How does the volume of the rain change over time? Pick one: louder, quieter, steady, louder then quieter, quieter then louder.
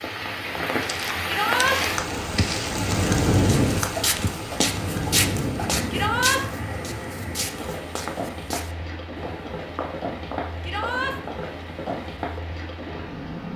quieter.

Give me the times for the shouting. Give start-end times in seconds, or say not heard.
1.2-1.8, 5.9-6.4, 10.6-11.2.